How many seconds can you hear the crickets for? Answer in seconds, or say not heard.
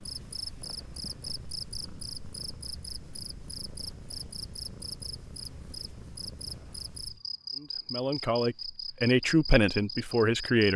11 s.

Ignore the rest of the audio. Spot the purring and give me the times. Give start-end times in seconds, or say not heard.
0.0-7.1.